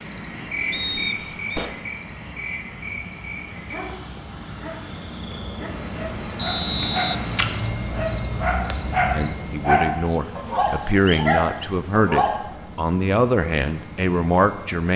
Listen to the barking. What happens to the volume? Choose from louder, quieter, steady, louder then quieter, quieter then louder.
louder.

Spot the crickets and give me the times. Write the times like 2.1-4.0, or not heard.
0.0-9.3.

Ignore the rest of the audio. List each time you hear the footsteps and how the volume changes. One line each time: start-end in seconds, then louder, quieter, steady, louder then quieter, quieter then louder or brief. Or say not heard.
not heard.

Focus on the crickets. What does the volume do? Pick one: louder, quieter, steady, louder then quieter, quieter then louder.
quieter then louder.